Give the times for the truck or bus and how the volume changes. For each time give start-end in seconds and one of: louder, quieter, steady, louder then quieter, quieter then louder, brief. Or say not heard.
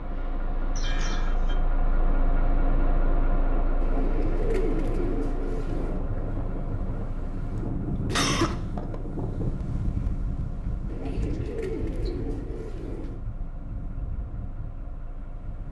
0.0-15.6 quieter.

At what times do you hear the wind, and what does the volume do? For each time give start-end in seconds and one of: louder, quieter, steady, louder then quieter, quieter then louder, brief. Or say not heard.
0.0-15.6 louder then quieter.